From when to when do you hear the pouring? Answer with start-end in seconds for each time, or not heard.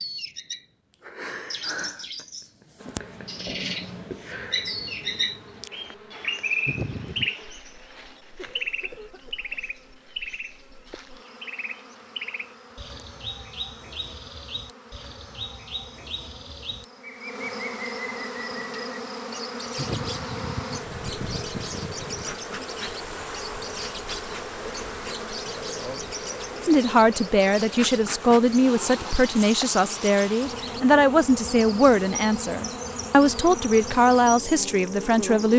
6.7-7.3, 19.8-22.3.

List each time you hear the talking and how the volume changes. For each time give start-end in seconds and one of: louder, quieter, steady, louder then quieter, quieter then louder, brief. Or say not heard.
26.6-35.5 steady.